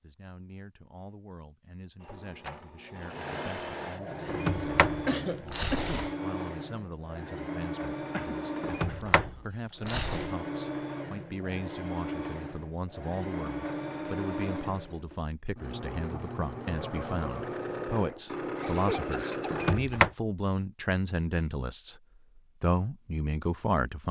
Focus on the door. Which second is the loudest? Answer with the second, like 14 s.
20 s.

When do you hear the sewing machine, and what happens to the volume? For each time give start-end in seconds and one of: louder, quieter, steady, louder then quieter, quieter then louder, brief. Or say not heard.
2.0-19.9 steady.